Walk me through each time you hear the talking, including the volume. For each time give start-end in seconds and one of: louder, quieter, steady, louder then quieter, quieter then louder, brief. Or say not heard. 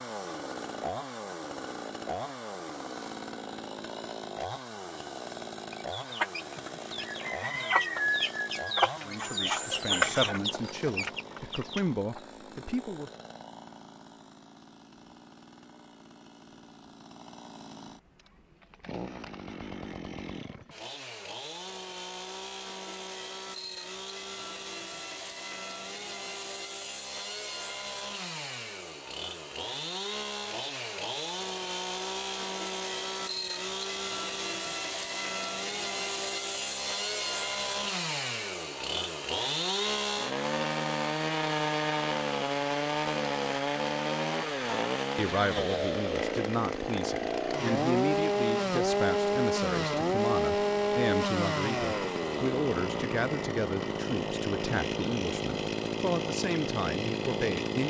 9.0-13.1 louder then quieter
45.1-57.8 steady.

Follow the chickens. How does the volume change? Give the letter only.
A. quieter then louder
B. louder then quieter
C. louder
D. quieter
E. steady
B.